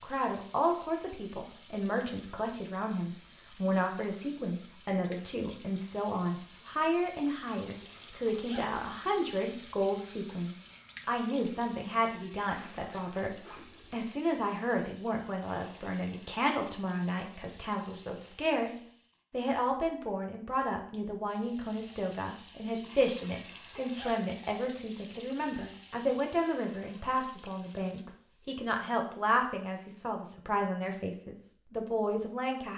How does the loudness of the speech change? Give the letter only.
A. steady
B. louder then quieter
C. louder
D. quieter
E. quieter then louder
A.